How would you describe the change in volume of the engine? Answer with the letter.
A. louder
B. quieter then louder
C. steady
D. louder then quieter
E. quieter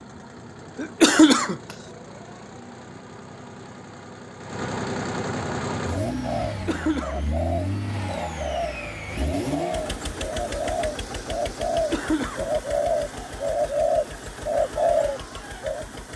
D.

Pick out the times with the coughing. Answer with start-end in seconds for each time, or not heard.
0.8-1.6, 6.5-7.2, 11.7-12.5.